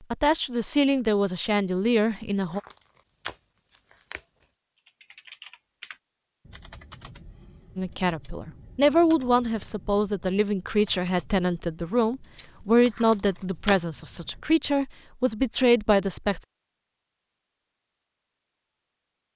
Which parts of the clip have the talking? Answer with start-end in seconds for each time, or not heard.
0.1-2.6, 7.8-16.4.